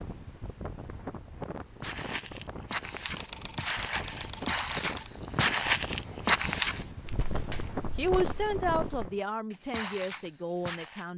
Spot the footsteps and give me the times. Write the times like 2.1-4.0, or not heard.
1.8-11.1.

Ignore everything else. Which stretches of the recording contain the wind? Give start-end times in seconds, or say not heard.
0.0-9.2.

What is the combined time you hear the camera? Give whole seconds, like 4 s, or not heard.
2 s.